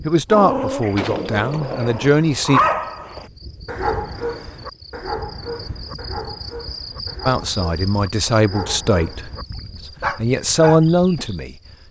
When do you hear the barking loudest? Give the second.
3 s.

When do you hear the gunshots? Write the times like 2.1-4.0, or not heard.
0.9-2.1.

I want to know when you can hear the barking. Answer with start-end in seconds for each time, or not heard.
0.3-11.3.